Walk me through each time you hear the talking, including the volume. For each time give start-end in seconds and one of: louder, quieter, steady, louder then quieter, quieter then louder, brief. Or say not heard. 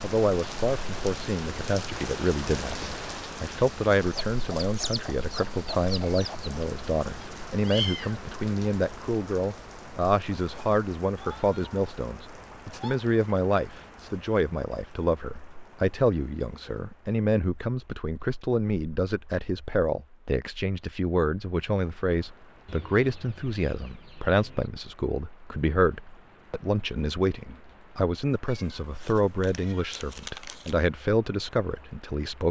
0.0-32.4 steady.